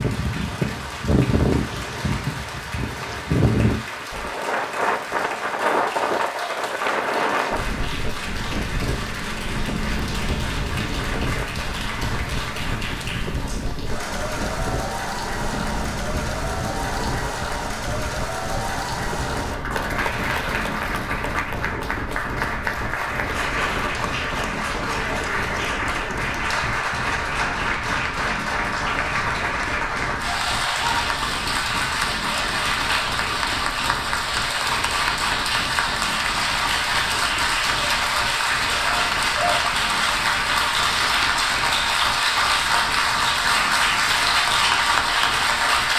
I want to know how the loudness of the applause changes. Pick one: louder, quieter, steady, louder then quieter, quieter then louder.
louder.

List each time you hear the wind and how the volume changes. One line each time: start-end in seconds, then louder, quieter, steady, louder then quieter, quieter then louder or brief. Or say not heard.
0.0-45.9 quieter.